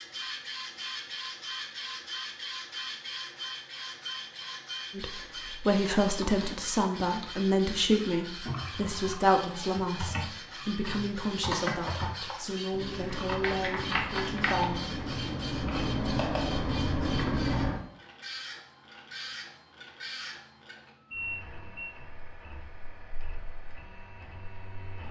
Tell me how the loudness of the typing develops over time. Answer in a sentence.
The loudness of the typing goes up.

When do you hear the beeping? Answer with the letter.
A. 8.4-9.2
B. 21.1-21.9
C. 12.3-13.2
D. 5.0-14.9
B.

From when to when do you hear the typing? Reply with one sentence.
The typing can be heard from 6.0 to 17.8 s.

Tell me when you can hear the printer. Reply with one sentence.
You can hear the printer from 0.0 to 25.0 s.